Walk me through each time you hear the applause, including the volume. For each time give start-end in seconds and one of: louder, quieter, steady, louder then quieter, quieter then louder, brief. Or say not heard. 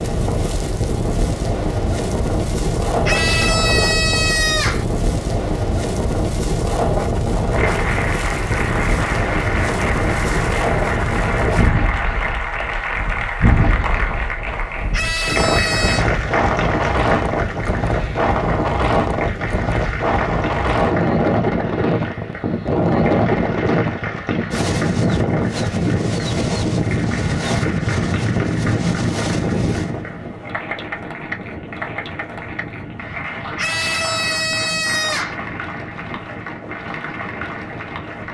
7.5-38.2 quieter.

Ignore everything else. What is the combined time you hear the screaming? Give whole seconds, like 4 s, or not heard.
5 s.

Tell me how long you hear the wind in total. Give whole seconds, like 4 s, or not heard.
38 s.